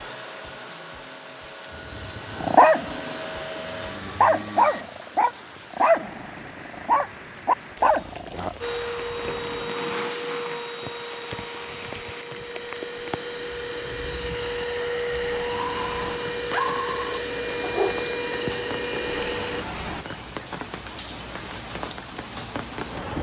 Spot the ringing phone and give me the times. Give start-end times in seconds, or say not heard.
not heard.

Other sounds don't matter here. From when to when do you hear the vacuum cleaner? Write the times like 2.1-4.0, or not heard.
0.0-4.8, 8.6-19.6.